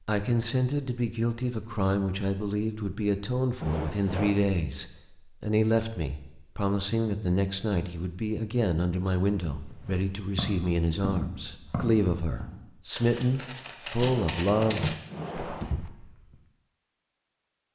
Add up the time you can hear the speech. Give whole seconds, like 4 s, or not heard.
15 s.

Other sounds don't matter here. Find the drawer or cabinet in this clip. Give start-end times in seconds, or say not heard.
3.6-4.5, 14.0-15.9.